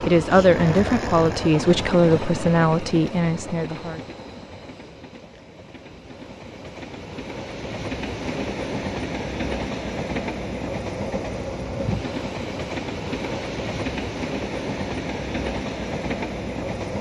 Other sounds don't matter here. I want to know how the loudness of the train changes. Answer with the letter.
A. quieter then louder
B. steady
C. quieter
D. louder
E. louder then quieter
A.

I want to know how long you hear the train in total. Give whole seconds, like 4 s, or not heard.
17 s.